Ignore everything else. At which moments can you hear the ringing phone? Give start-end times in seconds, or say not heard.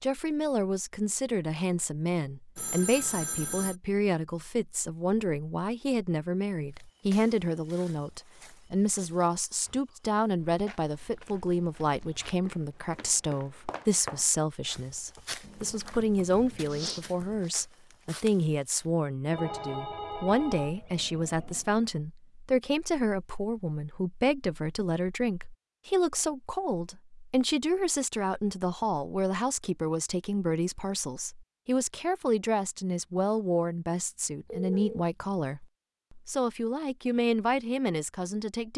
2.5-3.8, 19.3-21.7, 34.5-35.0.